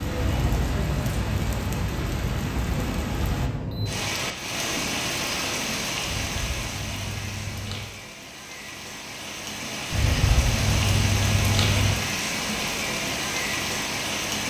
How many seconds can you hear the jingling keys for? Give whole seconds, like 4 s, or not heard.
5 s.